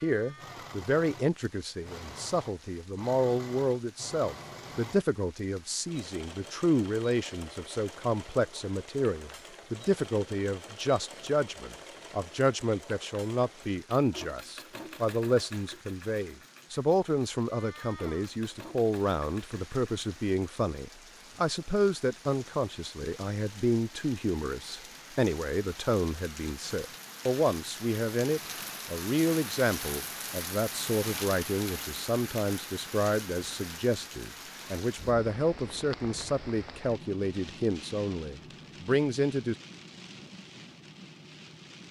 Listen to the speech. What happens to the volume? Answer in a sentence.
The loudness of the speech stays about the same.